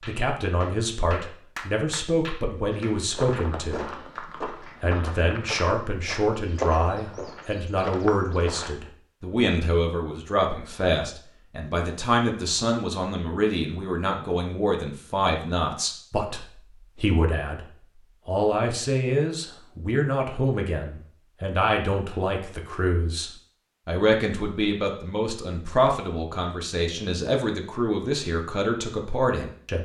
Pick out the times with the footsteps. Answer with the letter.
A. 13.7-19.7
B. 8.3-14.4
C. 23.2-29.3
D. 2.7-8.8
D.